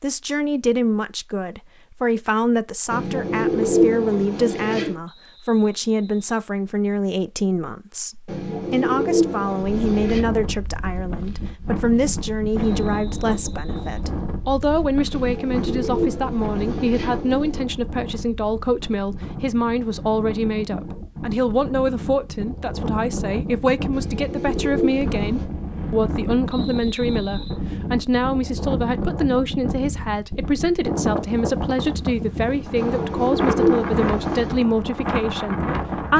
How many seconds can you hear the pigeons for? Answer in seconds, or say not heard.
10 s.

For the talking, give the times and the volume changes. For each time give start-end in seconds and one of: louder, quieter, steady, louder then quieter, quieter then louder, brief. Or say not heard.
0.0-36.1 steady.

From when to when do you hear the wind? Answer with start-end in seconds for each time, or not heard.
9.7-36.1.